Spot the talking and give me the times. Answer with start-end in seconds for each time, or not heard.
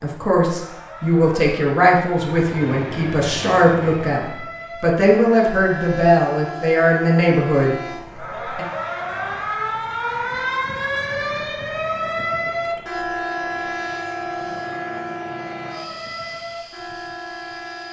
0.0-8.7.